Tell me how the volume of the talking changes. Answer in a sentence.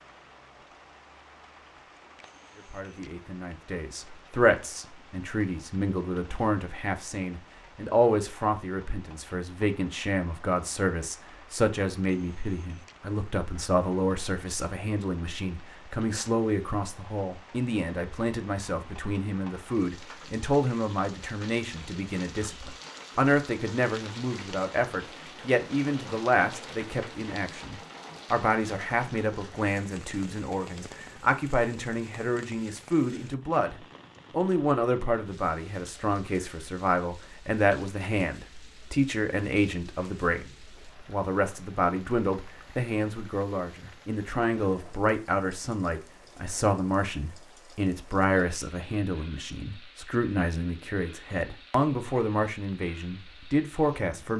The loudness of the talking stays about the same.